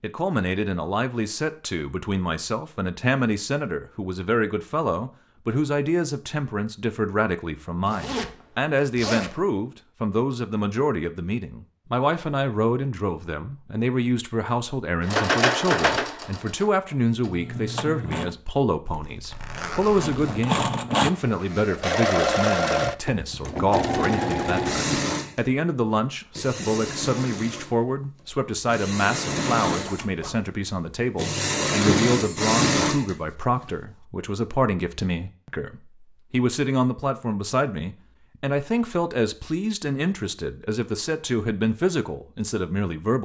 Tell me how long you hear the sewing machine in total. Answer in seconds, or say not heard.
17 s.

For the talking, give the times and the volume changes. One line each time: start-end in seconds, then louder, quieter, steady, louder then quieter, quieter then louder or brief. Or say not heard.
0.0-43.1 steady.